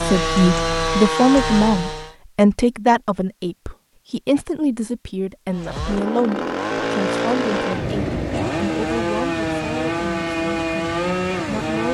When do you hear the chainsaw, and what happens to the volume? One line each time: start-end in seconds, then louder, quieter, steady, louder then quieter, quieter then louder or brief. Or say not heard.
0.0-2.1 brief
5.5-11.8 steady.